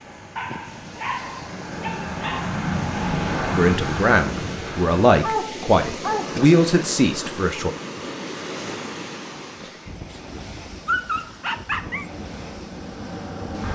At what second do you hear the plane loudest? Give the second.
3 s.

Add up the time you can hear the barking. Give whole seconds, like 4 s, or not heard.
5 s.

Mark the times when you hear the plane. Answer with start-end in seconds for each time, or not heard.
0.0-5.2, 11.8-13.6.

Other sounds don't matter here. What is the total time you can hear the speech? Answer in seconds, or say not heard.
4 s.